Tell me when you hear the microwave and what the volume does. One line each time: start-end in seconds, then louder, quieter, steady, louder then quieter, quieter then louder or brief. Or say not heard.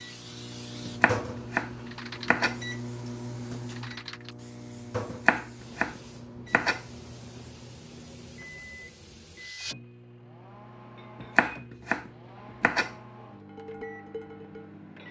0.0-15.0 quieter.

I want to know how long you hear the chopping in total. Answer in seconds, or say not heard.
5 s.